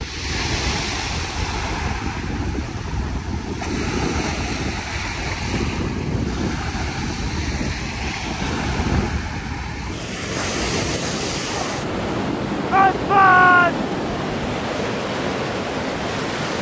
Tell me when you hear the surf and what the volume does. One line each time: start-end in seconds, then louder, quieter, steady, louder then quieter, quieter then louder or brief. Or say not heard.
0.0-16.5 steady.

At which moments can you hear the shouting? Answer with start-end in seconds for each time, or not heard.
12.7-13.9.